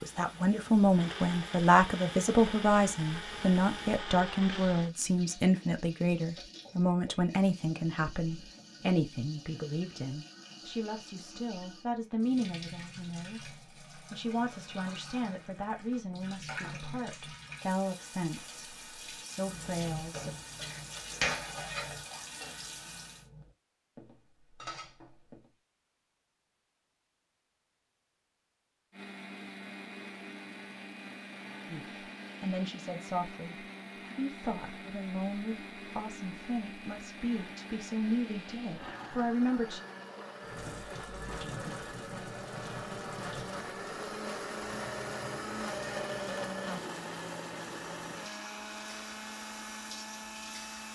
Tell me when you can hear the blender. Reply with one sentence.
The blender can be heard from 0.0 to 4.9 s and from 28.9 to 50.9 s.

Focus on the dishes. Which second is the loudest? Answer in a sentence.
The volume of the dishes peaks at 21 seconds.